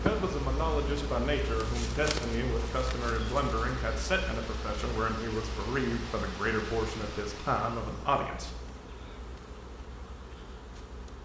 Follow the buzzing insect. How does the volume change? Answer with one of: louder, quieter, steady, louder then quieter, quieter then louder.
quieter.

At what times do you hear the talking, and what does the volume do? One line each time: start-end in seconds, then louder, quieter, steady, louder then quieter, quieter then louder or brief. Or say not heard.
0.0-8.5 steady.